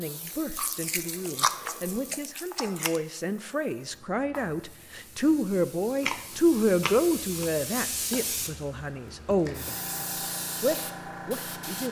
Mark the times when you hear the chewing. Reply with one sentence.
You can hear the chewing from 0.2 to 3.0 s and from 6.0 to 7.5 s.